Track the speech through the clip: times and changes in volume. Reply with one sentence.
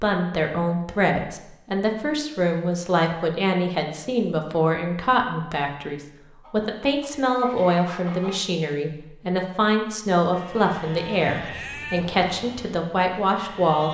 You can hear the speech from 0.0 to 13.8 s, at a steady volume.